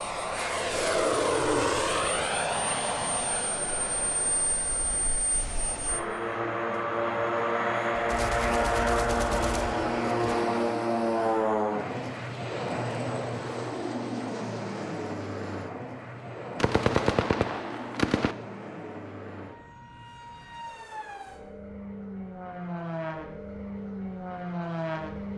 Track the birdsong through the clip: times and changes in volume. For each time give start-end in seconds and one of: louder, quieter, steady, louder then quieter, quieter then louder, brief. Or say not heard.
not heard.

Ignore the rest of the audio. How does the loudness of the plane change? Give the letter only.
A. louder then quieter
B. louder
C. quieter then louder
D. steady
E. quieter
E.